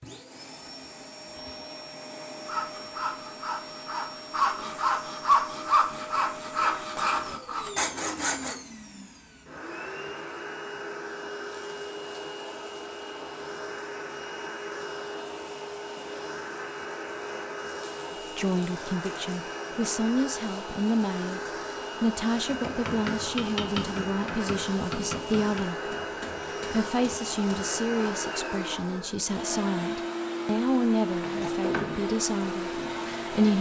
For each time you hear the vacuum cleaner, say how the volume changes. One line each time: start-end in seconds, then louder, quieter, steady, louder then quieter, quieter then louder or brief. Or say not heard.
0.0-33.5 louder.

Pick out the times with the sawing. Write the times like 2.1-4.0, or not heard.
2.5-8.6.